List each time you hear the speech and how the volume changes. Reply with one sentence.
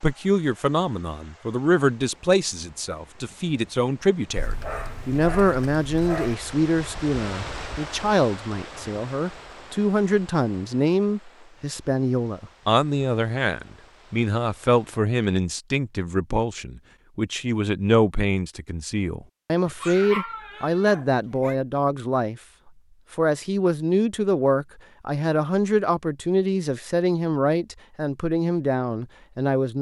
You can hear the speech from 0.0 to 22.4 s, at a steady volume; and from 23.1 to 29.7 s, at a steady volume.